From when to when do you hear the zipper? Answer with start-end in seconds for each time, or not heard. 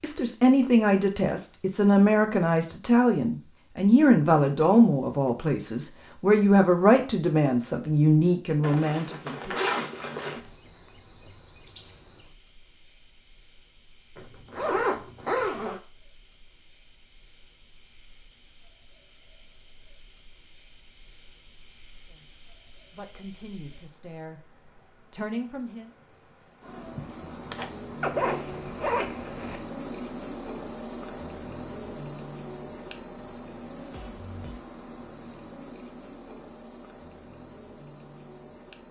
8.6-10.4, 14.2-15.8, 28.0-29.6.